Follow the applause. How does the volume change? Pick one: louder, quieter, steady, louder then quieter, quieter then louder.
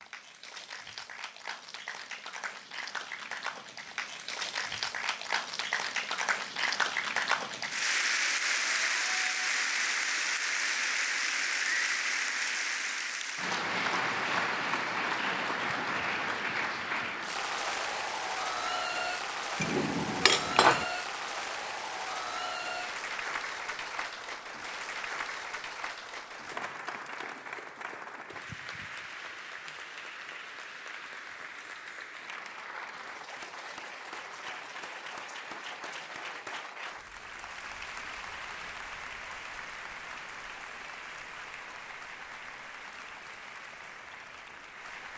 quieter.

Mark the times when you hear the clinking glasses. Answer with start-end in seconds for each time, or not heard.
19.6-20.9.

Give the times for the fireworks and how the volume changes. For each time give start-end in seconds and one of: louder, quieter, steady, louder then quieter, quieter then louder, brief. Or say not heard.
not heard.